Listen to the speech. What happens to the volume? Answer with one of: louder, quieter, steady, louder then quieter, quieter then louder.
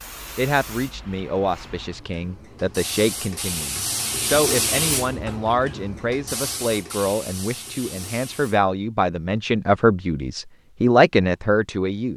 louder.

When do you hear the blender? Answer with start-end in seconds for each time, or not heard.
not heard.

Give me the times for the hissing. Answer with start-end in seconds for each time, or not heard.
0.0-8.7.